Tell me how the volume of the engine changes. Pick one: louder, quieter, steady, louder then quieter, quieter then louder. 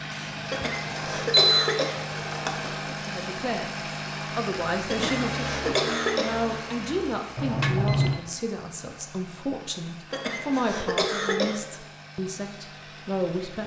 quieter.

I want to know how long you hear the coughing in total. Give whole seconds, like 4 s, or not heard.
6 s.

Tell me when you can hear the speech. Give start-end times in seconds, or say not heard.
2.9-13.6.